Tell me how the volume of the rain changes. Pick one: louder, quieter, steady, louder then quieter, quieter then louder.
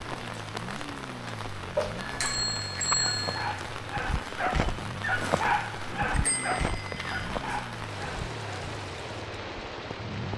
steady.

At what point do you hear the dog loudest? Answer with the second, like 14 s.
5 s.